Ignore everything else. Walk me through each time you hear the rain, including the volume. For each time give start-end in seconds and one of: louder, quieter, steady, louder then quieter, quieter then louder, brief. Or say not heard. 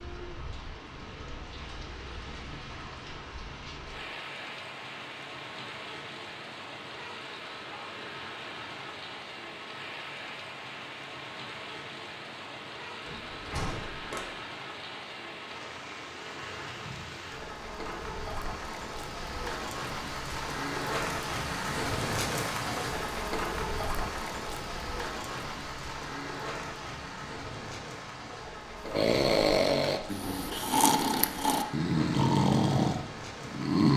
0.0-33.9 louder then quieter.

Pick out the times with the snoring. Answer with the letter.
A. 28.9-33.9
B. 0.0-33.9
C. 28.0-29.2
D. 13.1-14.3
A.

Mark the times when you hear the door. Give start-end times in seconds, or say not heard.
13.1-14.3.